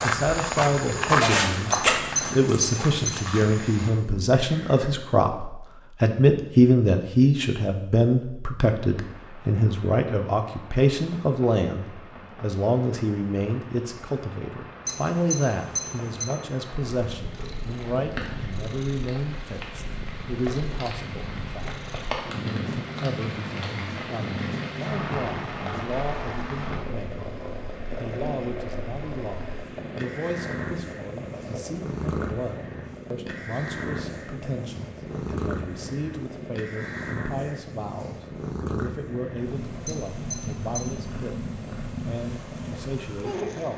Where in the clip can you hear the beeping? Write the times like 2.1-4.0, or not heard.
1.7-3.1, 14.8-16.2, 39.9-40.9.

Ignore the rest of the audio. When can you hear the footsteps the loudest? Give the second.
1 s.